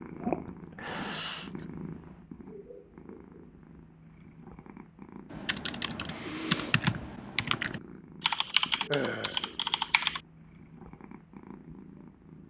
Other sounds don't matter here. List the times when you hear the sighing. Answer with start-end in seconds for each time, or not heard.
0.5-1.6, 6.0-6.8, 8.9-9.4.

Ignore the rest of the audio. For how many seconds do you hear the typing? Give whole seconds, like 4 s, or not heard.
5 s.